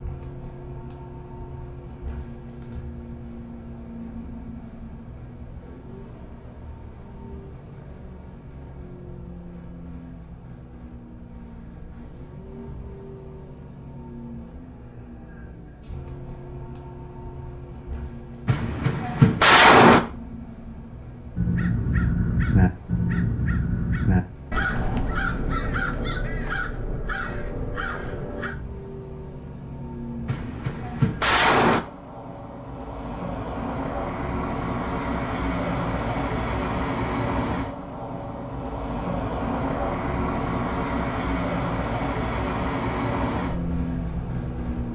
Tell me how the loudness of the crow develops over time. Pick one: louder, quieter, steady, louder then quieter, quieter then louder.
quieter.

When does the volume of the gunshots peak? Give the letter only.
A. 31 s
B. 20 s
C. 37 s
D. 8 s
B.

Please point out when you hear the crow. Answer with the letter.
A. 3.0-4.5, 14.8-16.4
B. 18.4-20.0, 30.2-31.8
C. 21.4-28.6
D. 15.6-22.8
C.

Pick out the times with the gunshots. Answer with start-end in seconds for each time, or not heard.
18.4-20.0, 30.2-31.8.